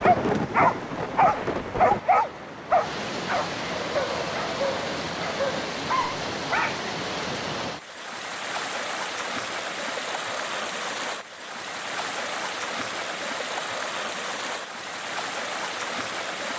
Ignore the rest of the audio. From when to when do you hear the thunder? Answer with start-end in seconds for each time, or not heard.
0.0-2.0.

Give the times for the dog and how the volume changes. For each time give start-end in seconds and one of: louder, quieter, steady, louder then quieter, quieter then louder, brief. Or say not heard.
0.0-6.8 quieter.